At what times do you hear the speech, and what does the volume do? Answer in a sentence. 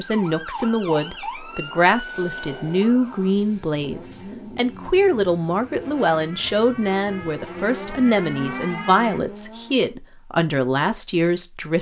The speech can be heard from 0.0 to 11.7 s, at a steady volume.